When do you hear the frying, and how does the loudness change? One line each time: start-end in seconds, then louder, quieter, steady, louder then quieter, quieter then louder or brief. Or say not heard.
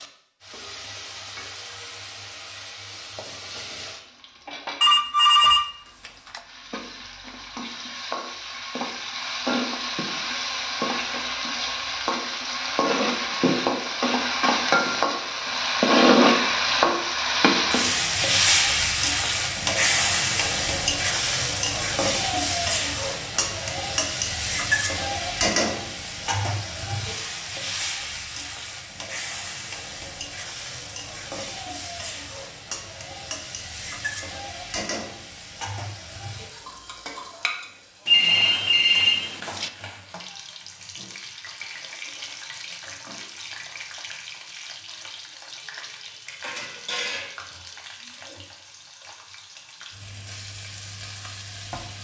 0.0-51.9 louder then quieter.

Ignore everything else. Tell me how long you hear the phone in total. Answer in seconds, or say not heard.
3 s.